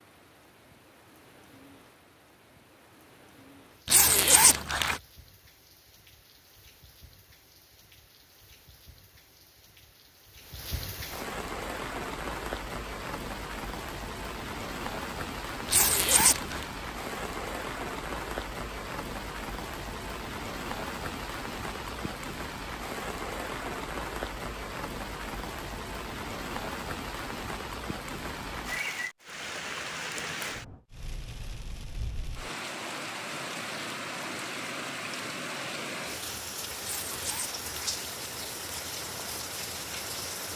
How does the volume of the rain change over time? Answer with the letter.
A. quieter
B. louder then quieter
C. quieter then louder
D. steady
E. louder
E.